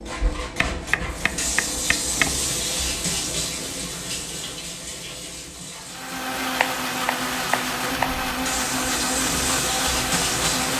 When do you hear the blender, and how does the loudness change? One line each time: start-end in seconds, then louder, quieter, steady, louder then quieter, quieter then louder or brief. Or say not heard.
5.8-10.7 steady.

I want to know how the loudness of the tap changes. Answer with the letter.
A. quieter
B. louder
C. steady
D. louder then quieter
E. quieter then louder
E.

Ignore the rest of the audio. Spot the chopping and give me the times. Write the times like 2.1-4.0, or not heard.
0.6-2.5, 6.5-8.2.